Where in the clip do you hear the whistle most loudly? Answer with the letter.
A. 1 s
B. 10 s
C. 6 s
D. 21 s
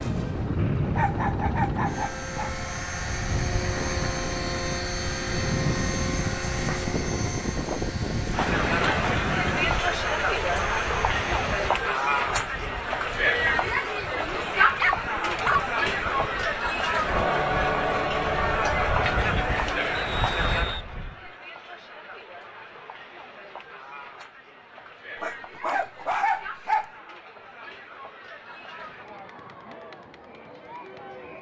A.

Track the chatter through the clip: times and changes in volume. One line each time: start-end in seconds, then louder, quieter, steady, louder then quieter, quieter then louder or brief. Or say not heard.
8.3-31.3 quieter.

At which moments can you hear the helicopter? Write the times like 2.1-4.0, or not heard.
0.0-11.7.